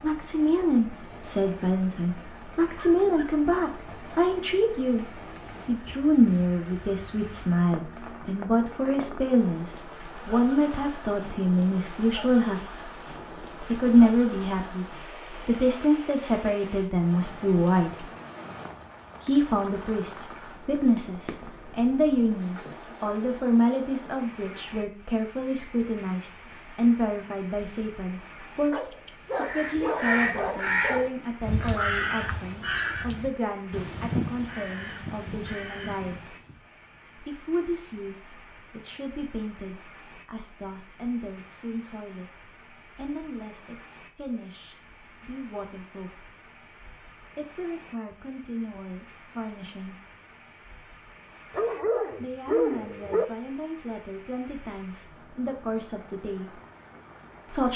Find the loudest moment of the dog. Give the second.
53 s.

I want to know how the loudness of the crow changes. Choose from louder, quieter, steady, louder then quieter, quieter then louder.
quieter.